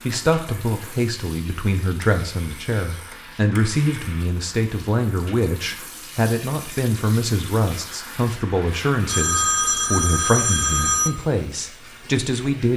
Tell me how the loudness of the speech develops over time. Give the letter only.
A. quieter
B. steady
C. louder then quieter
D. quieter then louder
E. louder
B.